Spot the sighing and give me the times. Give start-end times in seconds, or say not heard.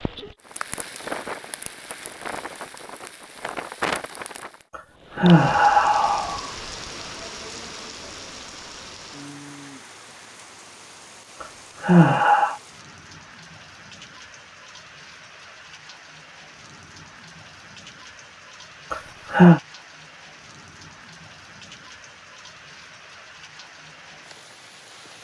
4.8-6.4, 11.4-12.6, 18.9-19.6.